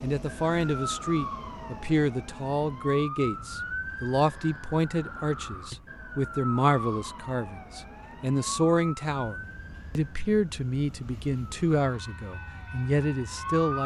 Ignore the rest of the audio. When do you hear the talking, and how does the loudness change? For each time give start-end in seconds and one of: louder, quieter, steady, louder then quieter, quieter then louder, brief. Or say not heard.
0.0-13.8 steady.